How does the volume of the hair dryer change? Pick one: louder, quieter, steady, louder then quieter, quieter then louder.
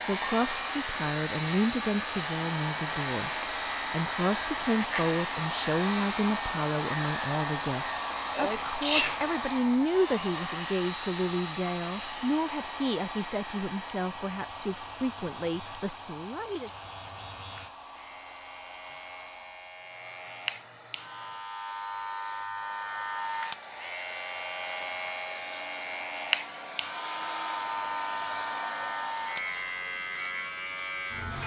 quieter then louder.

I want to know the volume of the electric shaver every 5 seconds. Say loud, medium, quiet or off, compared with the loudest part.
loud, loud, medium, quiet, loud, loud, loud.